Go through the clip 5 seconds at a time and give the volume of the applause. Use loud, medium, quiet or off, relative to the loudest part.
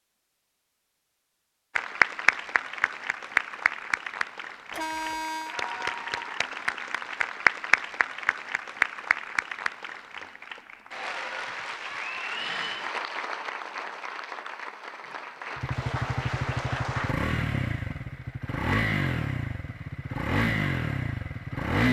loud, loud, medium, medium, off.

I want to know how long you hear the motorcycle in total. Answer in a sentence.
The motorcycle can be heard for 6 seconds in total.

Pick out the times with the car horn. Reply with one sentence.
The car horn can be heard from 4.7 to 5.5 s.